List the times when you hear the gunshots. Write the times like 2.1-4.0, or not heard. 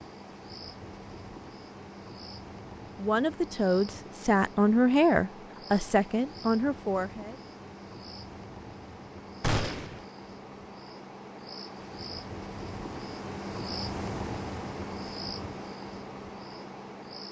9.4-10.1.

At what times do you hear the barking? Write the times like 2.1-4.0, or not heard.
not heard.